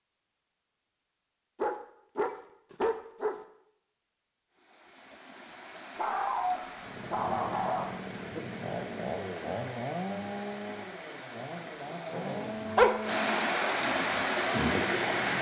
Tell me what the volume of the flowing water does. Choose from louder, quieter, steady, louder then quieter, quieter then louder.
louder.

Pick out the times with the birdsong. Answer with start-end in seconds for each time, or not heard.
not heard.